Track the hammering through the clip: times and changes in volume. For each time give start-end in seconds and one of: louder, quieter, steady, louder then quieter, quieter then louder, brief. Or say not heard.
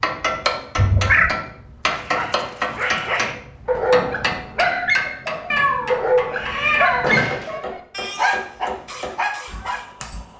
0.0-10.3 quieter.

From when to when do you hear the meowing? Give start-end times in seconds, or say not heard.
0.8-1.3, 5.5-7.7.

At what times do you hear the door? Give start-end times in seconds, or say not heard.
7.0-7.5.